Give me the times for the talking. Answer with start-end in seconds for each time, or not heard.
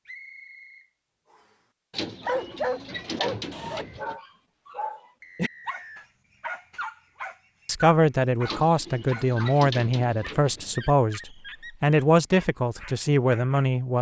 7.7-13.9.